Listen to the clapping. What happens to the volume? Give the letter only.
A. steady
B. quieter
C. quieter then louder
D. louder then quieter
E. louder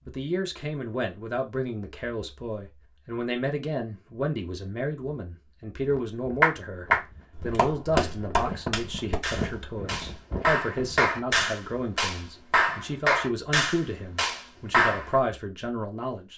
C.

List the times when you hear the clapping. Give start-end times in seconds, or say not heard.
6.4-15.1.